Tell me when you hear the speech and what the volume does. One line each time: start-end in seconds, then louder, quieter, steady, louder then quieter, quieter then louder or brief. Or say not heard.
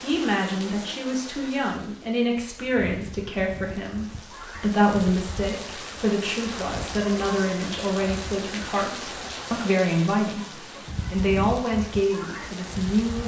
0.0-13.2 steady.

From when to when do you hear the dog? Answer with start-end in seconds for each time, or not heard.
not heard.